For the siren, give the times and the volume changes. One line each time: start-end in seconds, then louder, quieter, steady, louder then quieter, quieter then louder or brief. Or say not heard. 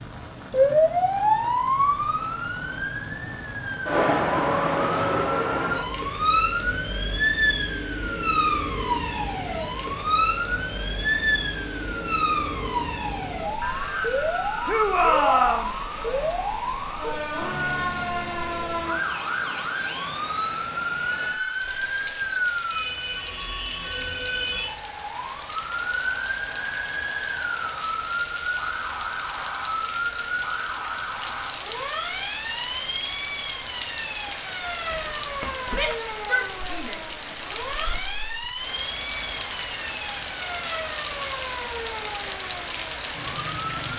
0.0-43.9 quieter.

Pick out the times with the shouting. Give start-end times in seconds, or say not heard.
14.7-15.8, 35.7-37.1.